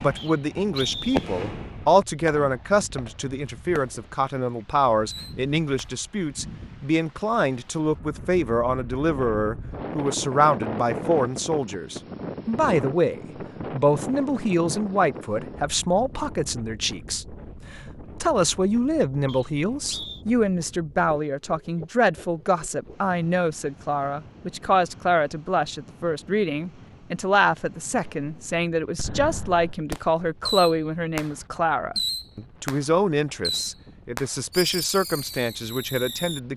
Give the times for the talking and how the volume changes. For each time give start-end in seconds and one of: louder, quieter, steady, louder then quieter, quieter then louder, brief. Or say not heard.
0.0-36.5 steady.